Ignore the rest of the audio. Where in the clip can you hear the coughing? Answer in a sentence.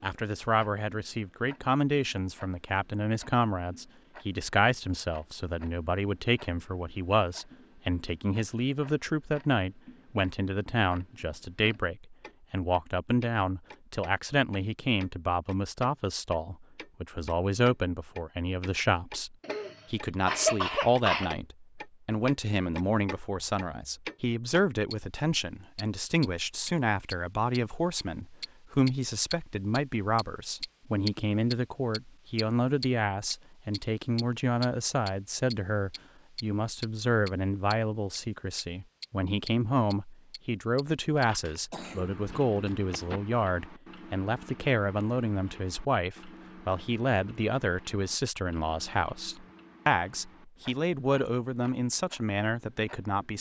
You can hear the coughing from 19.4 to 21.3 s and from 41.1 to 43.2 s.